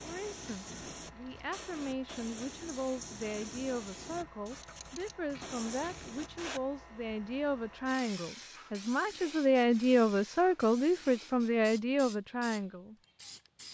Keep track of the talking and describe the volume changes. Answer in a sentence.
The volume of the talking goes up.